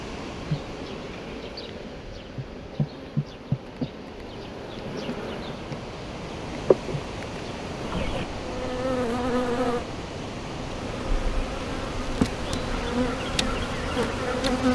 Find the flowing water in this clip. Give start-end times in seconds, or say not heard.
0.0-14.7.